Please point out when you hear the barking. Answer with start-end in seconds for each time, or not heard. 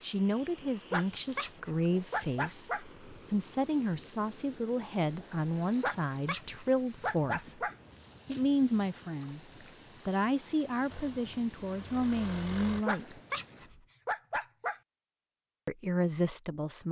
0.9-2.9, 5.8-7.8, 12.8-14.8.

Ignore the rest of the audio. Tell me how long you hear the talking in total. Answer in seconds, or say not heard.
13 s.